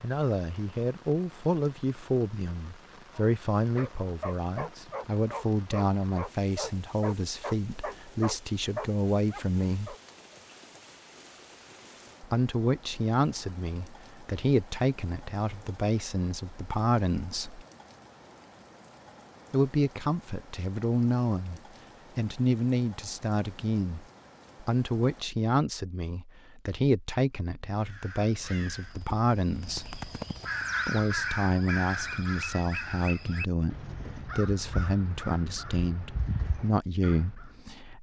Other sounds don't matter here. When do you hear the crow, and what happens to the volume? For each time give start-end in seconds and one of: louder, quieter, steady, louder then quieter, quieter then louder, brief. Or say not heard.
27.8-37.5 louder then quieter.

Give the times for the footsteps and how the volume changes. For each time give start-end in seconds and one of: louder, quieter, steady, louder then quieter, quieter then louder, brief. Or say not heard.
not heard.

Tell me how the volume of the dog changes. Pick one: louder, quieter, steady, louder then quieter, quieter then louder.
steady.